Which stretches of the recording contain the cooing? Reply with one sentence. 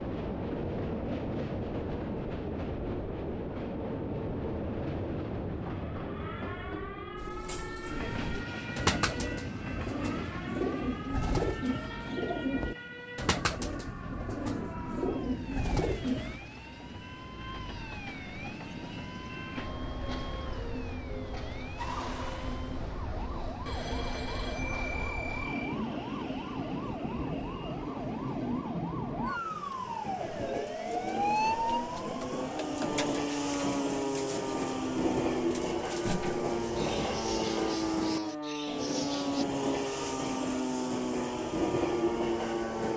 The cooing can be heard from 7.2 to 16.4 s and from 30.2 to 39.5 s.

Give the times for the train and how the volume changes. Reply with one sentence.
The train can be heard from 0.0 to 42.9 s, getting quieter then louder.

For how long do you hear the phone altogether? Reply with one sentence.
The phone can be heard for 2 seconds in total.